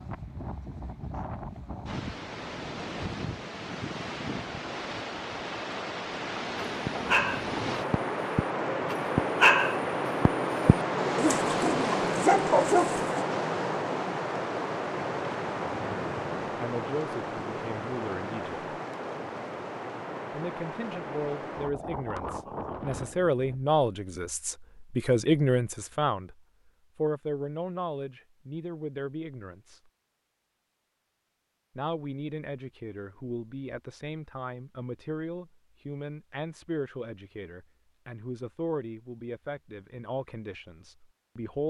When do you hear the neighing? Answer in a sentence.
You can't hear the neighing here.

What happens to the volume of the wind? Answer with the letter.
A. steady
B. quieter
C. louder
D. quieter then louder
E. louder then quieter
E.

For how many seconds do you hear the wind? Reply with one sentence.
You can hear the wind for 24 seconds altogether.